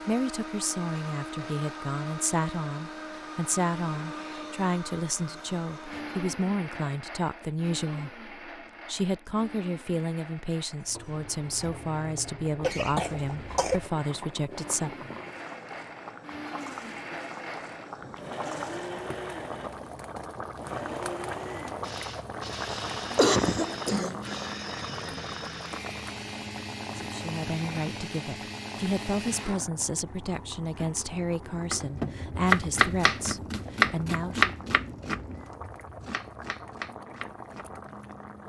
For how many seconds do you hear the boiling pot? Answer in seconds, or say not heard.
28 s.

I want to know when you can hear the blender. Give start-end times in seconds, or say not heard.
0.0-29.6.